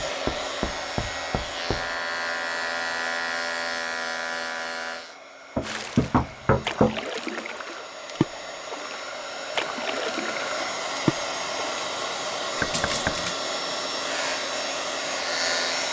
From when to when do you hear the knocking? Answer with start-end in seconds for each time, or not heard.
0.2-1.8, 5.5-7.0, 12.6-13.2.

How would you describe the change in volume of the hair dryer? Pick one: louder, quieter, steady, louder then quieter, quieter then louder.
quieter then louder.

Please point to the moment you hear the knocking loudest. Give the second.
7 s.